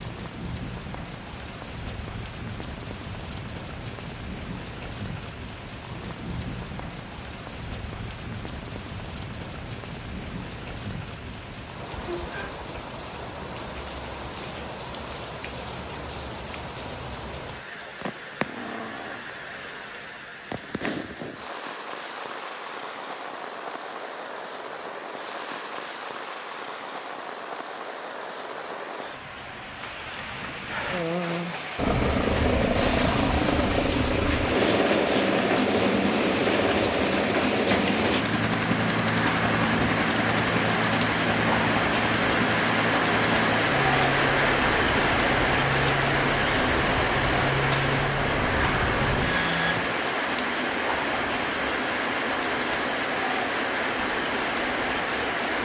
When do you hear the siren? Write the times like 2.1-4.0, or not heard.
not heard.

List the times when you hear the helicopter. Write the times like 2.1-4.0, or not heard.
31.8-49.8.